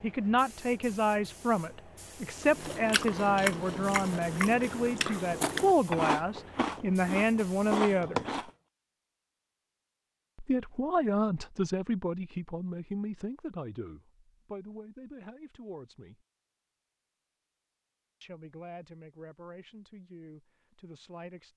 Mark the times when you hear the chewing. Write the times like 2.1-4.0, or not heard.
2.4-8.5.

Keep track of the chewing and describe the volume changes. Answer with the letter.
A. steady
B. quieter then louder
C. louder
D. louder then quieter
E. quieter
A.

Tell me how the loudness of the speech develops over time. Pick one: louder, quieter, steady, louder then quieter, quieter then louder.
quieter.